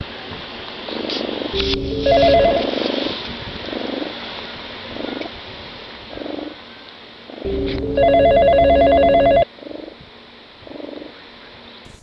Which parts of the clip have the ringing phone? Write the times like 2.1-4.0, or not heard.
1.5-2.7, 7.5-9.4.